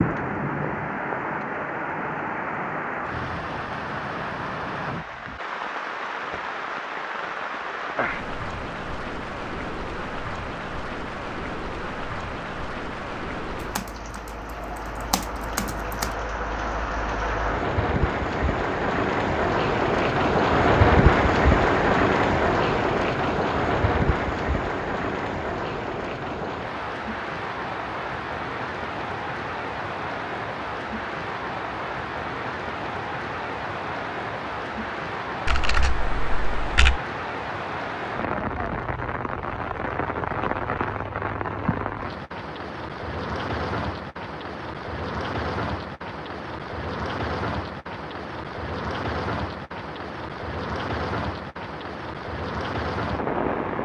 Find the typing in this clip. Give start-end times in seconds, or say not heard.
13.6-16.1, 35.5-37.0.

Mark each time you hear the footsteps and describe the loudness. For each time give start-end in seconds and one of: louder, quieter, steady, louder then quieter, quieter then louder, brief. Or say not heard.
not heard.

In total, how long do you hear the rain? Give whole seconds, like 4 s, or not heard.
54 s.